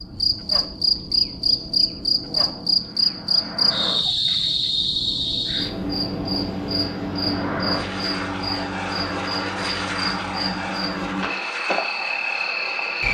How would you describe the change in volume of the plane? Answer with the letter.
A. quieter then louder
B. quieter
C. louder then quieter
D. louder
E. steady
D.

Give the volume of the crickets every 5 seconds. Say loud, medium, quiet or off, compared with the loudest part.
loud, medium, medium.